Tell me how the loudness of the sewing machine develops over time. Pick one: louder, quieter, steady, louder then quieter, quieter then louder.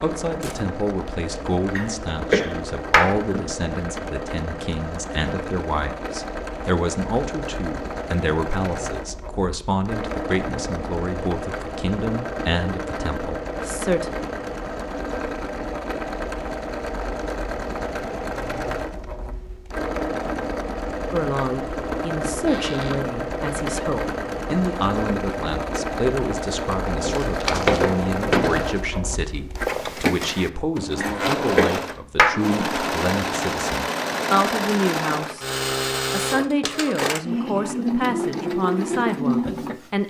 louder.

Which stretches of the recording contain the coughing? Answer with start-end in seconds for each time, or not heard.
1.8-3.5, 31.0-32.9.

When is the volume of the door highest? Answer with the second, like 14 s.
28 s.